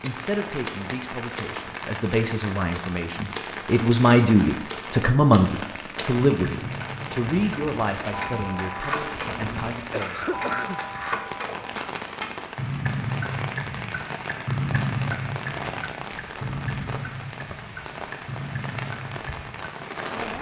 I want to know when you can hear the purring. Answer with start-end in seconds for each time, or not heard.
not heard.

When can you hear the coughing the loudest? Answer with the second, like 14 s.
10 s.